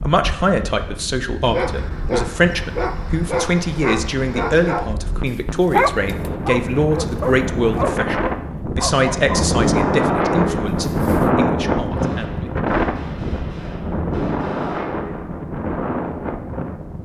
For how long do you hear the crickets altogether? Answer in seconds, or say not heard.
not heard.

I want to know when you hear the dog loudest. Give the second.
6 s.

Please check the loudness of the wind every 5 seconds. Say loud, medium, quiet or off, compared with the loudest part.
quiet, loud, loud, medium.